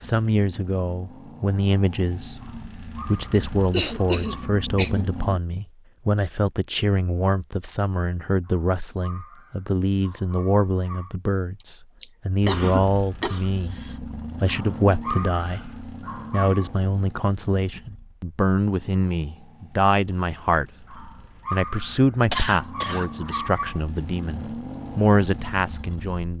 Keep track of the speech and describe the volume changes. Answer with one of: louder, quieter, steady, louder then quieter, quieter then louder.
steady.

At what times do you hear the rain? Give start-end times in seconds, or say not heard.
not heard.